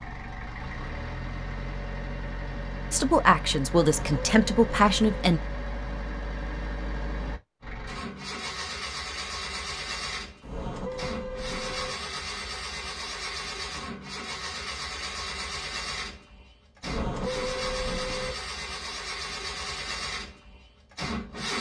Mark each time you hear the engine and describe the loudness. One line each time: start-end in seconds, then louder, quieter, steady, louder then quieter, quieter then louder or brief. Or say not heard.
0.0-21.5 steady.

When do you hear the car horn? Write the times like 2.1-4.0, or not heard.
3.8-5.2, 10.4-11.9, 16.8-18.4.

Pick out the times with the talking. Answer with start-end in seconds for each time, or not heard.
2.9-5.4.